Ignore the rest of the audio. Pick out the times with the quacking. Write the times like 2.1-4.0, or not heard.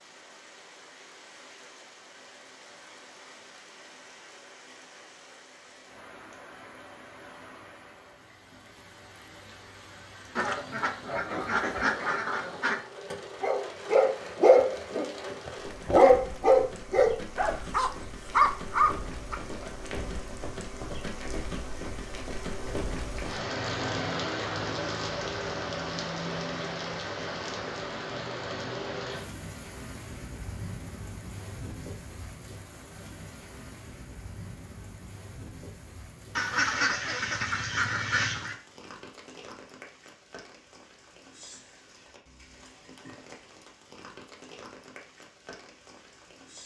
10.3-12.8, 36.4-38.6.